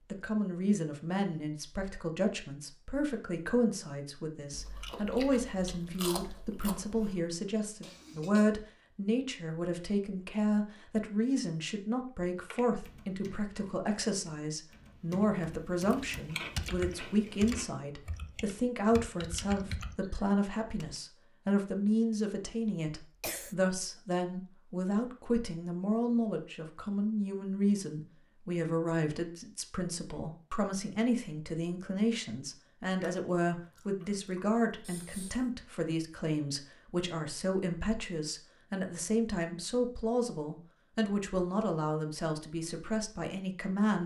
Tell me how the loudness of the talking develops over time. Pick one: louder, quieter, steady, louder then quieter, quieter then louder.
steady.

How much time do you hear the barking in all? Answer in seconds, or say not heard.
not heard.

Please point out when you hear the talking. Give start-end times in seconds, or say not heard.
0.1-44.0.